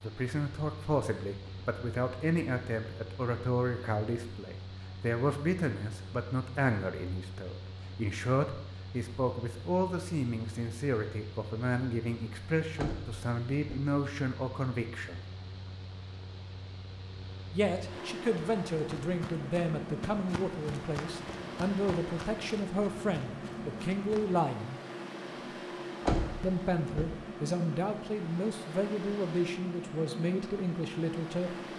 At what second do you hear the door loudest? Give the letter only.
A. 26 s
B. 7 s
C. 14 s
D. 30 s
A.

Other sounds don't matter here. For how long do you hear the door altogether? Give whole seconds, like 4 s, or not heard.
2 s.